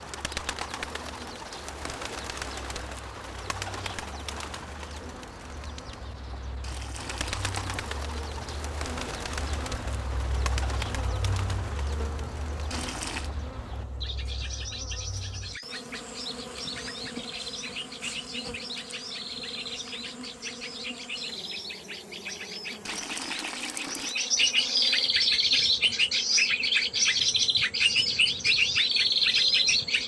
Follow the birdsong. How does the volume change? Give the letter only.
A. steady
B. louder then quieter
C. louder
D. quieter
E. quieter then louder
C.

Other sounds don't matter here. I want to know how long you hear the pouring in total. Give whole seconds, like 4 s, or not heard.
3 s.